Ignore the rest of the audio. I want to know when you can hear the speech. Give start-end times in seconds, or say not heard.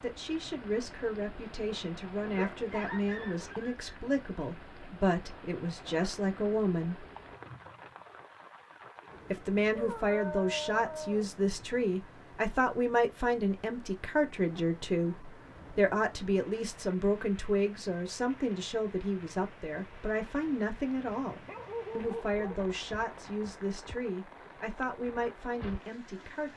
0.0-7.0, 9.3-26.5.